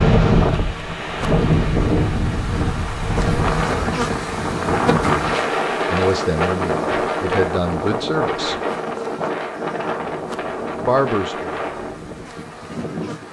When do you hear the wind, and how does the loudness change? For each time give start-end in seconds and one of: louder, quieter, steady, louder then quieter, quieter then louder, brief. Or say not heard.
0.0-13.2 quieter.